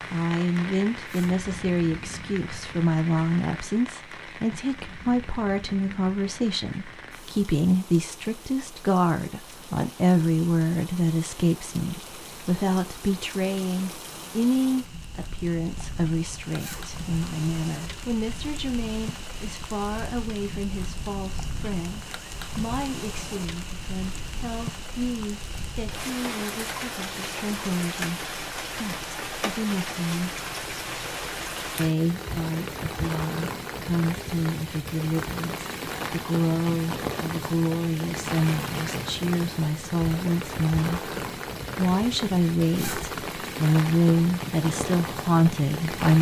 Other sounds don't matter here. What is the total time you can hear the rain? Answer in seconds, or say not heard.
46 s.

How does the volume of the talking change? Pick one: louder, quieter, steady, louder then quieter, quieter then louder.
quieter then louder.